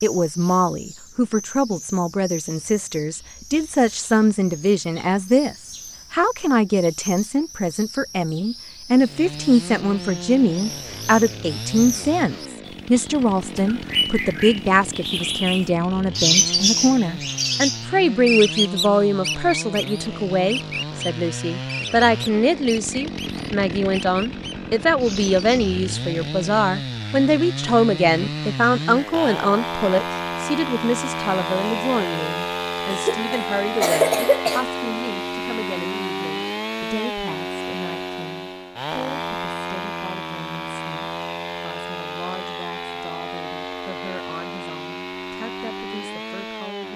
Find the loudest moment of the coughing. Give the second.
34 s.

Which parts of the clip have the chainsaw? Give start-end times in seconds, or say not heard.
8.9-46.9.